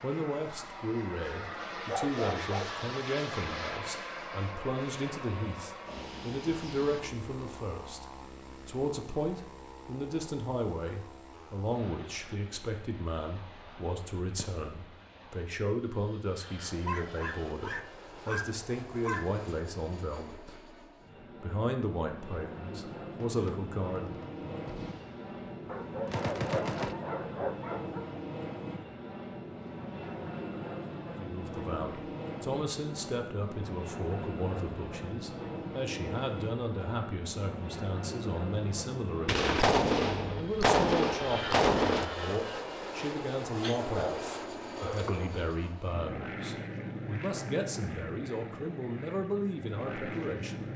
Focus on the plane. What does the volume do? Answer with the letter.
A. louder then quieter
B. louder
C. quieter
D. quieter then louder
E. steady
D.